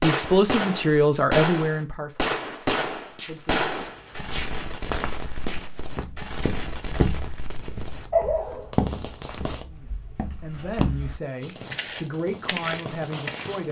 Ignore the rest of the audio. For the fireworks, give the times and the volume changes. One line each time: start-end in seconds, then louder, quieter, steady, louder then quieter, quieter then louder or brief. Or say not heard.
0.0-9.7 quieter then louder
11.4-13.6 brief.